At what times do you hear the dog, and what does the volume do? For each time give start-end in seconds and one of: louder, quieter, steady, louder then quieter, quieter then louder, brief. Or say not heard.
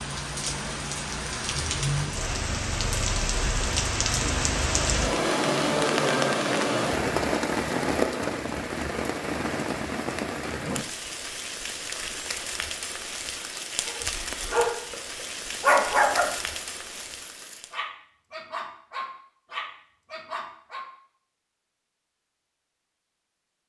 13.8-14.9 brief
15.6-20.9 quieter then louder.